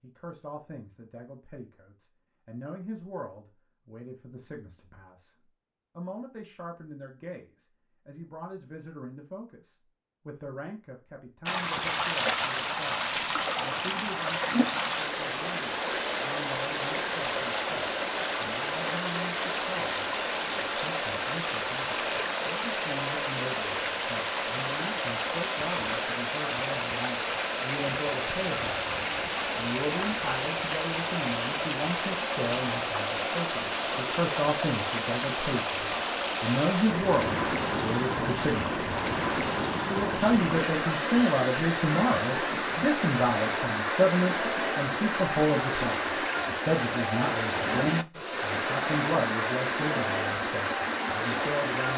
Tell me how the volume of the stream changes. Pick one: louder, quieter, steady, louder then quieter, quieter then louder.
steady.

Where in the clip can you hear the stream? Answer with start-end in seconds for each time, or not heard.
11.4-51.9.